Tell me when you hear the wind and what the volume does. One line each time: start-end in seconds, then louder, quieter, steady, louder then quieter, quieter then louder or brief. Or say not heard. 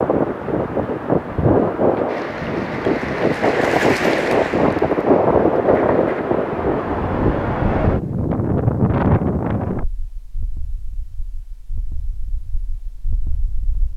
0.0-13.9 quieter.